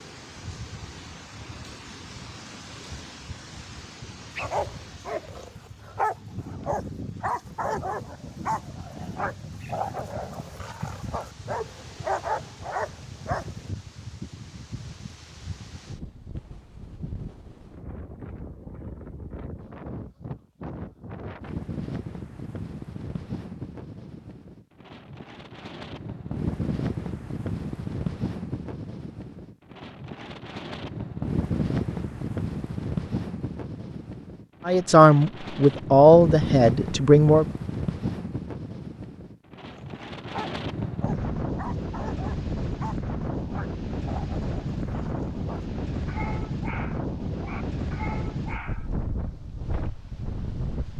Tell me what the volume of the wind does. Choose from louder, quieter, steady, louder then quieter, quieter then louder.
louder.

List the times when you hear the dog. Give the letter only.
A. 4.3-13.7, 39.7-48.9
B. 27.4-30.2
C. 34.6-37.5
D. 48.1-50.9
A.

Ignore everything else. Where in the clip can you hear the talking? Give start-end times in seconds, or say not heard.
34.6-37.5.